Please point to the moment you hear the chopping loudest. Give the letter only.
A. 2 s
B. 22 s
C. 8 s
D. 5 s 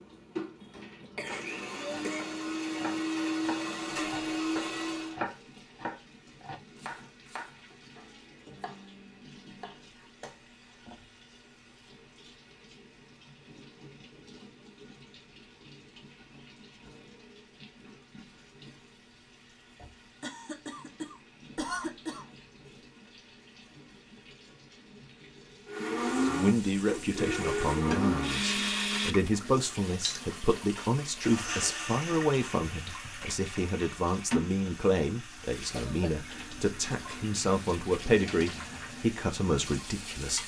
D.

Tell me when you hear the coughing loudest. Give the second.
22 s.